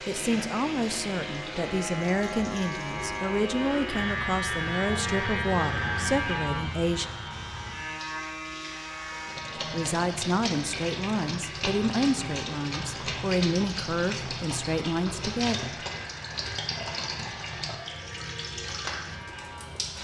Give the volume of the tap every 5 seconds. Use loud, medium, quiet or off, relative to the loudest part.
medium, medium, loud, loud.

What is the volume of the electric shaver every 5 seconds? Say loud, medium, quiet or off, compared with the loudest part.
loud, loud, medium, medium.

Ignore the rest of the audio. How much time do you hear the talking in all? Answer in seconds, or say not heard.
13 s.